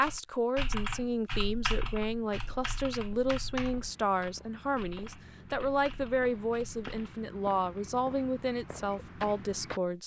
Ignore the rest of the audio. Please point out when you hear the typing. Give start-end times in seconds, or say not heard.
0.0-7.1.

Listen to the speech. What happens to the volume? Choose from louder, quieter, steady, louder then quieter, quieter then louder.
steady.